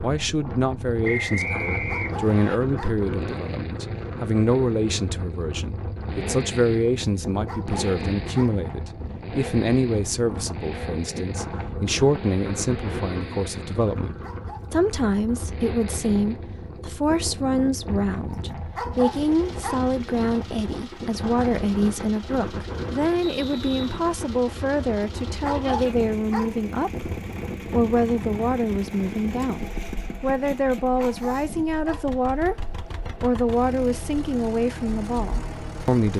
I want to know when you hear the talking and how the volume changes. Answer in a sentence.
The talking can be heard from 0.0 to 32.5 s, at a steady volume; and briefly from 33.1 to 36.1 s.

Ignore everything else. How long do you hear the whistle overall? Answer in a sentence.
The whistle can be heard for 2 seconds in total.